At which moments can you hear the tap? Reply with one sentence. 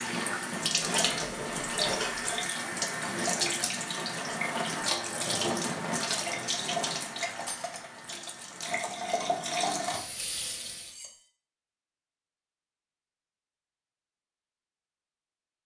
The tap can be heard from 0.0 to 10.9 s.